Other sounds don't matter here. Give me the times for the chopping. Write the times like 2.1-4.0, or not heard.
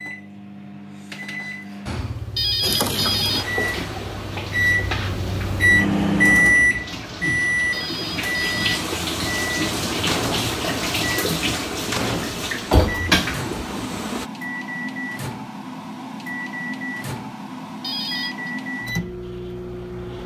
not heard.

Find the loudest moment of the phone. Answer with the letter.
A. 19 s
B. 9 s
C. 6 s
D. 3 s
D.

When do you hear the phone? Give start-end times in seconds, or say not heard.
2.4-3.5, 7.7-8.7, 17.8-18.5.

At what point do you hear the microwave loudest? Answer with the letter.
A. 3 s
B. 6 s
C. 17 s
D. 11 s
B.